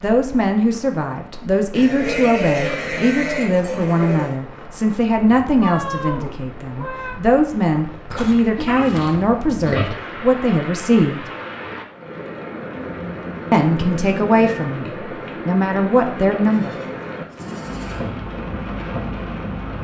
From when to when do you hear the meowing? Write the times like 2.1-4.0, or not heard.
5.6-7.2, 12.8-14.8.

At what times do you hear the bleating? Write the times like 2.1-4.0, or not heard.
1.8-4.3, 8.1-9.9, 16.5-18.1.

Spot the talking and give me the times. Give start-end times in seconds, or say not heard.
0.0-11.2, 13.5-16.8.